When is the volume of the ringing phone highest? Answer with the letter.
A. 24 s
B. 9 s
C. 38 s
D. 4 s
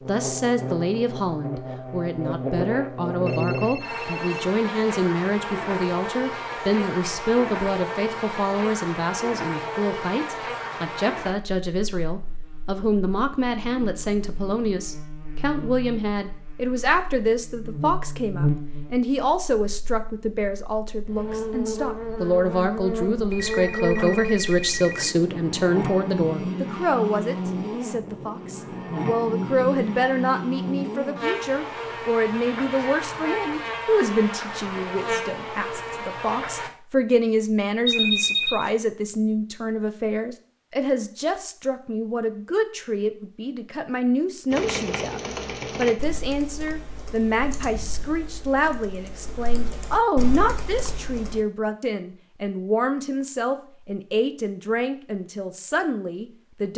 C.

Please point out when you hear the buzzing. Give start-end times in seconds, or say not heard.
0.0-36.7.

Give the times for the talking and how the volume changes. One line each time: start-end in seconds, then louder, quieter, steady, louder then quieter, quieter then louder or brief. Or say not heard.
0.1-56.7 steady.